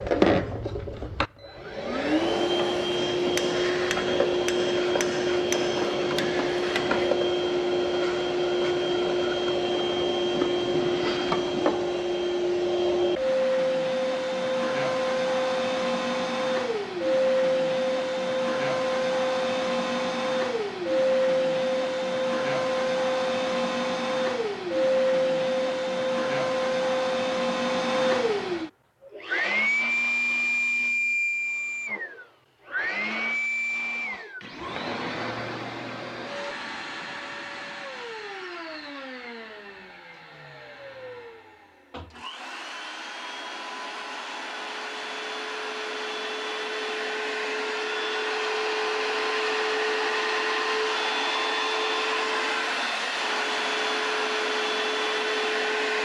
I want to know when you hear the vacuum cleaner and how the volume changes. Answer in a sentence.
The vacuum cleaner can be heard from 0.0 to 55.9 s, getting quieter then louder.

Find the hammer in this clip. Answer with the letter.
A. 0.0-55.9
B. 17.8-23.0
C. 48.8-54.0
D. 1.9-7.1
D.